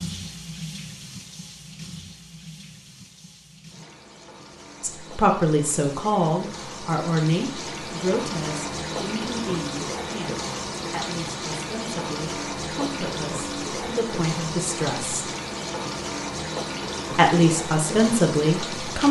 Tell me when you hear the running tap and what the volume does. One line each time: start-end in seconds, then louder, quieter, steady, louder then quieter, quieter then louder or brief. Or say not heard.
0.0-19.0 louder.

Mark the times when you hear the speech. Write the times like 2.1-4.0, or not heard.
4.8-15.3, 17.1-19.0.